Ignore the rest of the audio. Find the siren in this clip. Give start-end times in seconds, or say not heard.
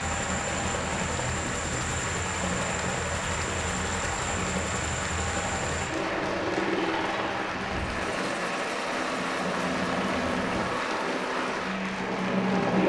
not heard.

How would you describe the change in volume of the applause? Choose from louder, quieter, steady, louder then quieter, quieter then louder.
steady.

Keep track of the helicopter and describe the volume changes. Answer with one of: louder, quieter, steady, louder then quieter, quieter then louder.
steady.